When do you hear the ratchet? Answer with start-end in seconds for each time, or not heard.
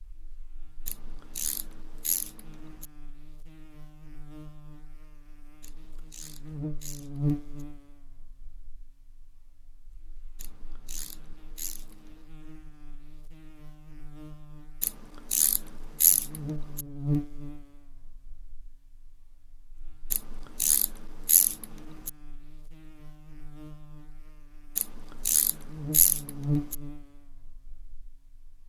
0.8-2.9, 5.6-7.7, 10.3-11.9, 14.8-16.9, 20.1-22.1, 24.8-26.8.